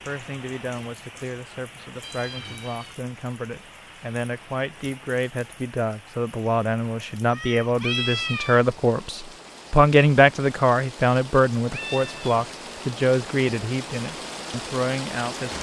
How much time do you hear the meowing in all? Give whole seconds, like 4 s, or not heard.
3 s.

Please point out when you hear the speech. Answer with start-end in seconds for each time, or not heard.
0.1-15.5.